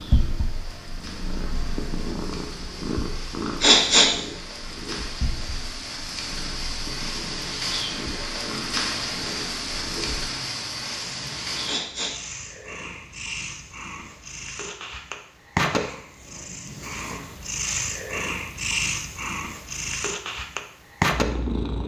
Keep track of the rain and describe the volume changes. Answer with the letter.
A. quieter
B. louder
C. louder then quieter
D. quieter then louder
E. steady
B.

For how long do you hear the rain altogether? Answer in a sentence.
You can hear the rain for 12 seconds altogether.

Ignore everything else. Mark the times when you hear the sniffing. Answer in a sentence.
You can hear the sniffing from 3.6 to 4.1 s and from 11.7 to 12.2 s.